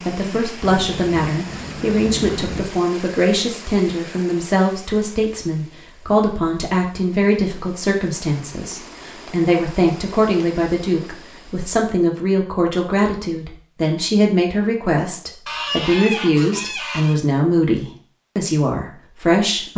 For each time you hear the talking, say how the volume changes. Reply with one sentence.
You can hear the talking from 0.1 to 19.7 s, at a steady volume.